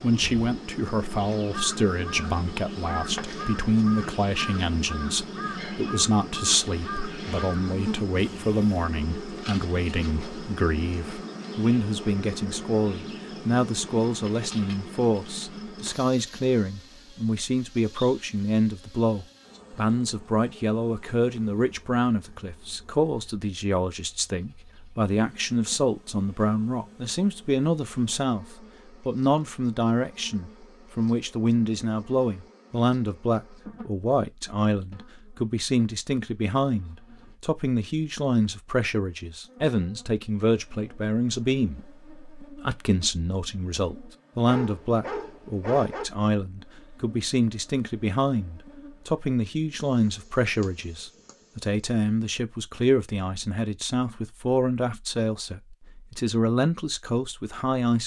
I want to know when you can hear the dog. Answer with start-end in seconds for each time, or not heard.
44.5-46.0.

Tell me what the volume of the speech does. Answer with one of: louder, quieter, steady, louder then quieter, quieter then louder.
steady.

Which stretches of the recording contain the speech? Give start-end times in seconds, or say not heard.
0.0-58.0.